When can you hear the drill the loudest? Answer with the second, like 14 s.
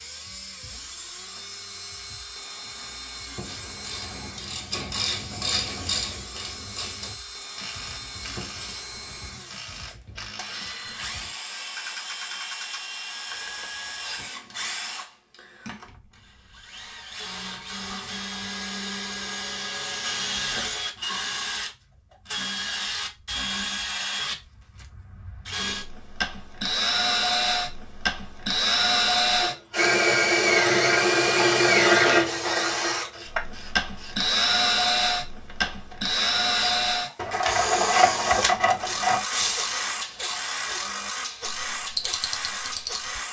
32 s.